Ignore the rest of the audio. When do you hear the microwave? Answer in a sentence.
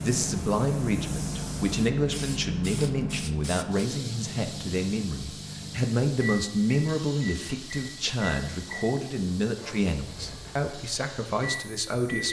You can hear the microwave from 0.0 to 12.2 s.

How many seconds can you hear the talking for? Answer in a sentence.
You can hear the talking for 12 seconds altogether.